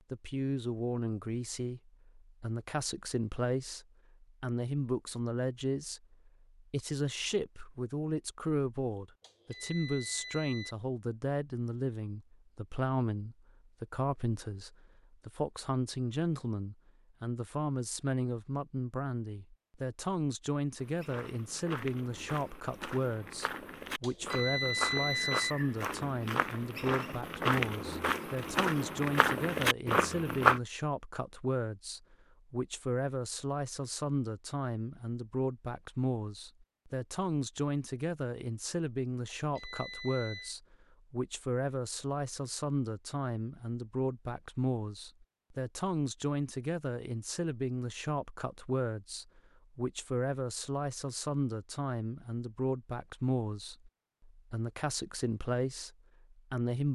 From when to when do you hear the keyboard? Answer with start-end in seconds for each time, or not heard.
not heard.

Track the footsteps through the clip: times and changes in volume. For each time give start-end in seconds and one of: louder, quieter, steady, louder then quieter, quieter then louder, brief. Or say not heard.
20.8-30.6 louder.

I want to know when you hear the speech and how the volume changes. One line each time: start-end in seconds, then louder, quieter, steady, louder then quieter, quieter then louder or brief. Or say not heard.
0.1-56.9 steady.